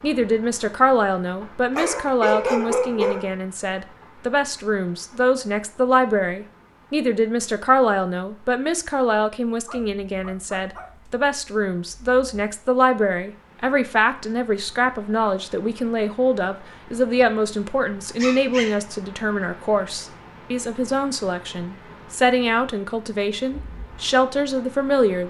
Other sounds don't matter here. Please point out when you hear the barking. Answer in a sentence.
You can hear the barking from 1.8 to 3.4 s, from 9.7 to 10.9 s and from 18.1 to 18.8 s.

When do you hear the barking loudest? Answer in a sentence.
The volume of the barking peaks at 2 seconds.